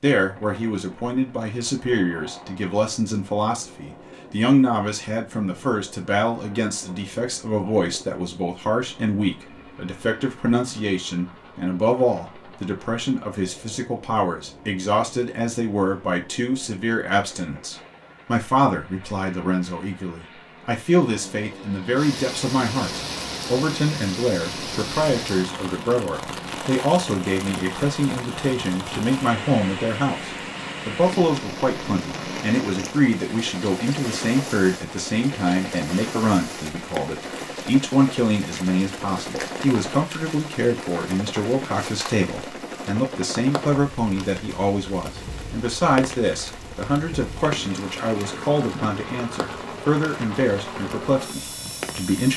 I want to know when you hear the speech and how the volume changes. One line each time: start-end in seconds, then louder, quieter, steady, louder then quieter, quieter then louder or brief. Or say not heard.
0.0-52.3 steady.